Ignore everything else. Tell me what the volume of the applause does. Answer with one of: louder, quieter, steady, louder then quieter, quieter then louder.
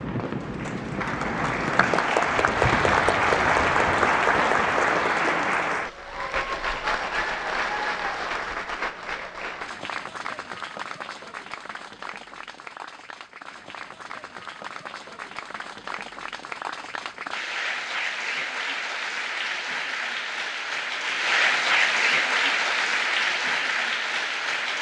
quieter then louder.